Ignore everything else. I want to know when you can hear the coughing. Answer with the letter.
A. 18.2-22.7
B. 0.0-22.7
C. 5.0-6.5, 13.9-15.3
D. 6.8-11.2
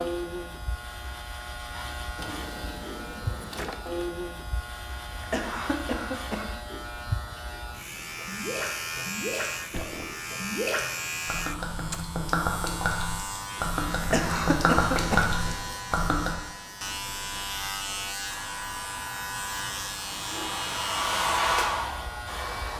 C.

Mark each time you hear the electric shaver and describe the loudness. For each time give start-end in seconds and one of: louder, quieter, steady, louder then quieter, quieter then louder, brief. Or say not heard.
0.0-22.7 steady.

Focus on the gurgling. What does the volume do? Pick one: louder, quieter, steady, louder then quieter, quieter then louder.
louder.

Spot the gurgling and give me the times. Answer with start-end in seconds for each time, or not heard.
8.0-16.4.